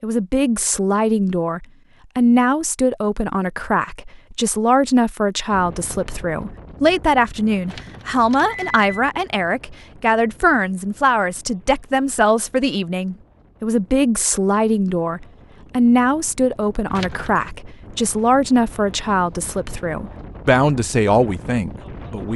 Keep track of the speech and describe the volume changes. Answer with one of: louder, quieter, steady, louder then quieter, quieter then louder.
steady.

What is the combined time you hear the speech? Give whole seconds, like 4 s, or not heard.
22 s.